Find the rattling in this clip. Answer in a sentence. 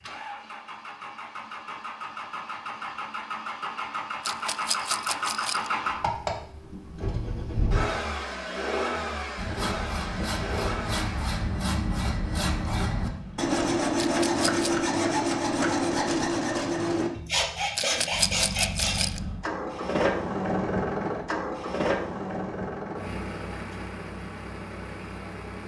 You can hear the rattling from 4.2 to 5.7 s, from 13.9 to 14.7 s and from 17.8 to 19.2 s.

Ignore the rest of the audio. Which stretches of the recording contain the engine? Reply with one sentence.
You can hear the engine from 0.0 to 13.6 s and from 18.1 to 25.6 s.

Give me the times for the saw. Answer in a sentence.
You can hear the saw from 9.3 to 19.1 s.